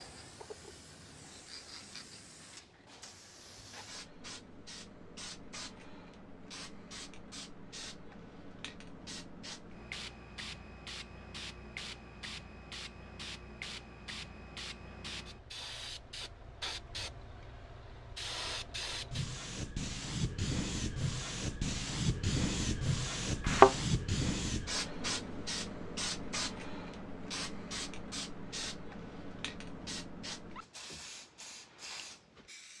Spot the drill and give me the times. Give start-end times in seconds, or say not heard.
not heard.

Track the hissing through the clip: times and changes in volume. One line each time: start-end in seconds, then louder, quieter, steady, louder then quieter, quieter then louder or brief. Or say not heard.
0.0-32.7 louder then quieter.